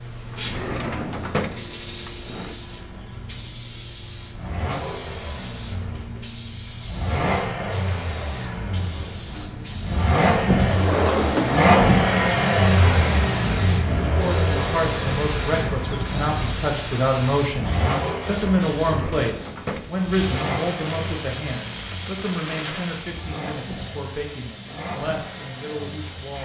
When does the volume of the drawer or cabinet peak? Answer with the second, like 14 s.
11 s.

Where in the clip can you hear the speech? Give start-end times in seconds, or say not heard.
14.1-26.3.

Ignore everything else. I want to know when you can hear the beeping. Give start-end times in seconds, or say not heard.
not heard.